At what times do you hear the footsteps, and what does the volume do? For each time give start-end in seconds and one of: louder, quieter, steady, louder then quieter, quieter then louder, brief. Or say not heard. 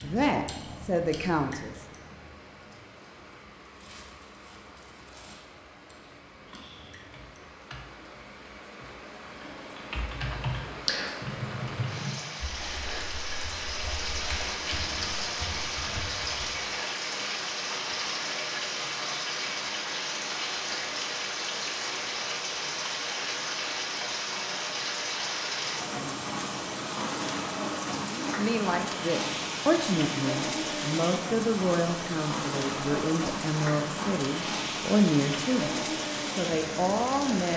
not heard.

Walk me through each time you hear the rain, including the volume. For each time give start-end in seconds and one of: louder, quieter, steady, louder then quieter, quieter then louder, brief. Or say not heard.
0.0-37.5 louder.